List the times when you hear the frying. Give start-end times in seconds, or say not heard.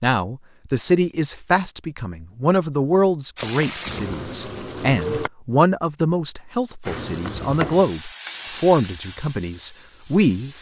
3.4-5.3, 6.8-10.5.